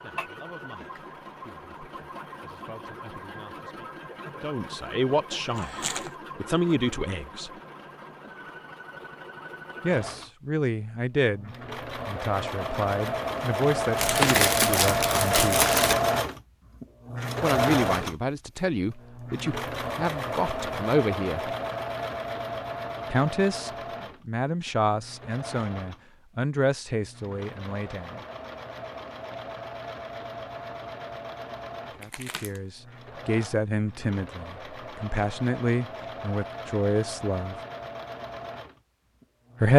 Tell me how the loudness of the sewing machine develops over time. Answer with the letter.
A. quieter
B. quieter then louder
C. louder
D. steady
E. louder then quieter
E.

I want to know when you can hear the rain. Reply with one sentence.
You can't hear the rain here.